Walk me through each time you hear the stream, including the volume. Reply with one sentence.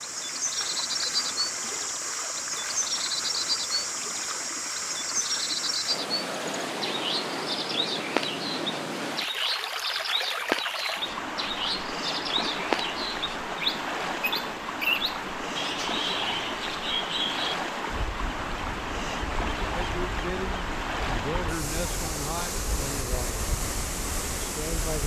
You can hear the stream from 0.0 to 25.0 s, at a steady volume.